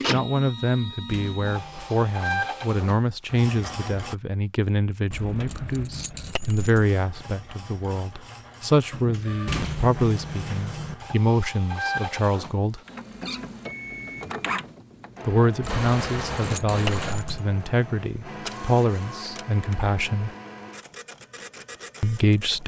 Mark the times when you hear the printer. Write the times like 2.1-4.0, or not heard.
0.0-4.2, 6.7-22.6.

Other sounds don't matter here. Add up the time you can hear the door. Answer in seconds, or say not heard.
4 s.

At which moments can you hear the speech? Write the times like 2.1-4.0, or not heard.
0.1-12.8, 15.2-20.3, 22.0-22.6.